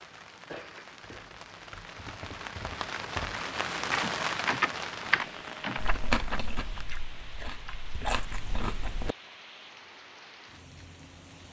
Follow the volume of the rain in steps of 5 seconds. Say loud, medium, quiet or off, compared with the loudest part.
loud, medium, quiet.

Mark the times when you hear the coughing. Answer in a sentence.
The coughing can be heard from 0.5 to 1.4 s.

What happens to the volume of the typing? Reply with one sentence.
The volume of the typing goes up.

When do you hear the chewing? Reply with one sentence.
The chewing can be heard from 5.8 to 9.2 s.